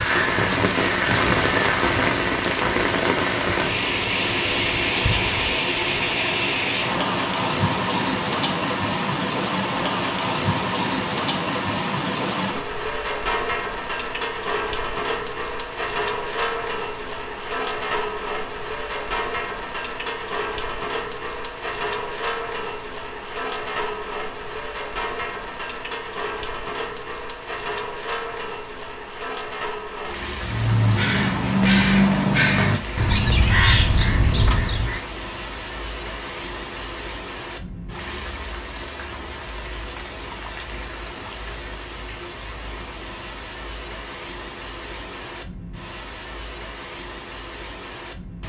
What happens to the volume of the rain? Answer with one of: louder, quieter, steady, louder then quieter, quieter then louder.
quieter.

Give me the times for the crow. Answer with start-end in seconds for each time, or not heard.
0.0-2.1, 30.4-35.0.